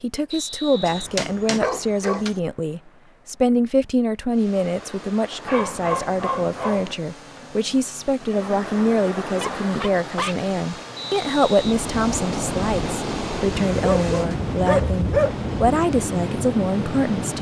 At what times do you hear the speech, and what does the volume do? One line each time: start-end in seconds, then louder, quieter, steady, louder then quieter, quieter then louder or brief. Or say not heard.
0.0-17.3 steady.